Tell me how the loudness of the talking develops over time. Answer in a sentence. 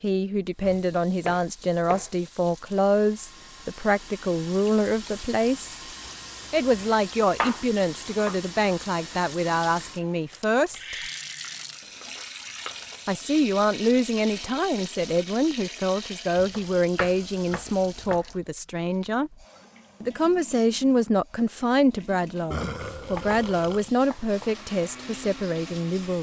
The loudness of the talking stays about the same.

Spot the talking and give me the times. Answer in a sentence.
The talking can be heard from 0.0 to 5.8 s, from 6.5 to 10.9 s, from 13.1 to 19.3 s and from 20.0 to 26.1 s.